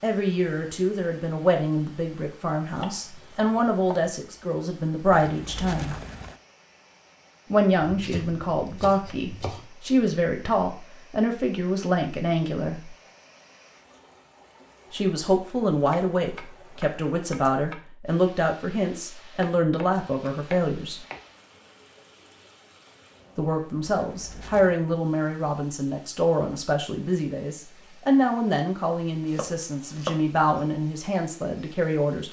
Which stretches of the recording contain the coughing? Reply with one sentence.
You can't hear the coughing here.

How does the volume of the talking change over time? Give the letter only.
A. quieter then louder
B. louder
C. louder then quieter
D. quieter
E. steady
E.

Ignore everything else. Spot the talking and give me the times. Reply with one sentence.
You can hear the talking from 0.0 to 6.0 s, from 7.5 to 12.9 s, from 14.9 to 21.1 s and from 23.4 to 32.2 s.